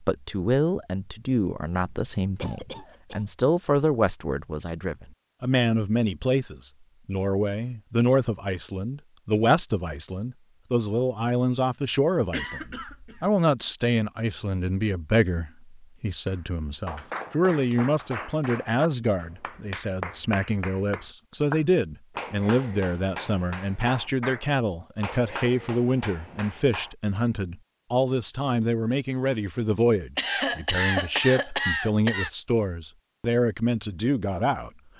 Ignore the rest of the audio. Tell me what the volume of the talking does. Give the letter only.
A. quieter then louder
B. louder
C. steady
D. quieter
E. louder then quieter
C.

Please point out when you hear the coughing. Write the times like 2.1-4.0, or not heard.
2.4-3.2, 12.3-13.3, 30.1-32.3.